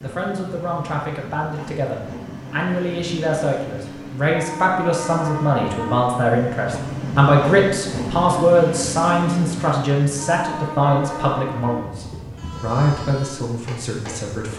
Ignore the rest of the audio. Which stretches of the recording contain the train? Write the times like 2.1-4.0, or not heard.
0.0-14.5.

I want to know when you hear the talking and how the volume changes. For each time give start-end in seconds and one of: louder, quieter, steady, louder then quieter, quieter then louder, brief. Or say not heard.
0.0-14.5 louder then quieter.